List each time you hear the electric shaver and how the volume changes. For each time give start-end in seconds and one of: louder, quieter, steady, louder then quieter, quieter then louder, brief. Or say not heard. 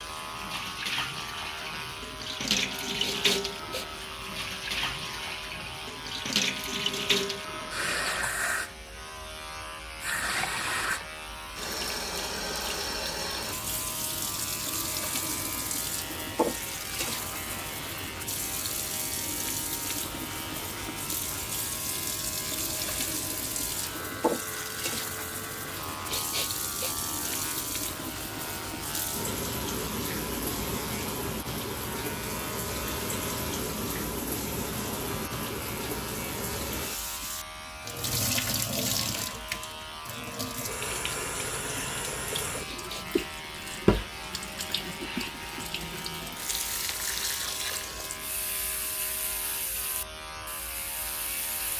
0.0-51.7 steady.